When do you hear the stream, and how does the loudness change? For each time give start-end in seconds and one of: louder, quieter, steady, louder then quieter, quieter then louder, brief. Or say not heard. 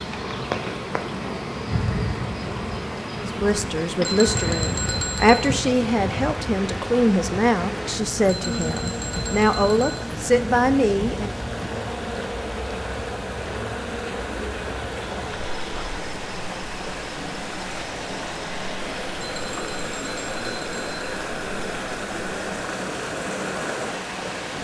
0.0-24.5 louder.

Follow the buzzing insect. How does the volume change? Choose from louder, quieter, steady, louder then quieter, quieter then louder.
quieter.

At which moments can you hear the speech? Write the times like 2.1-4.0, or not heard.
3.2-11.3.